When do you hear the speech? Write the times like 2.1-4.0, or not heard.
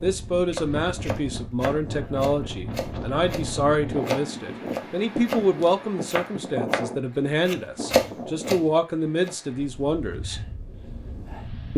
0.0-10.4.